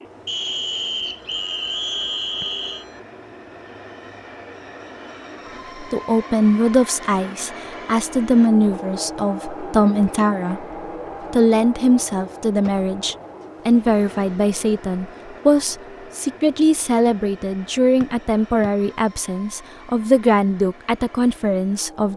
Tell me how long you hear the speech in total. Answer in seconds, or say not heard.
16 s.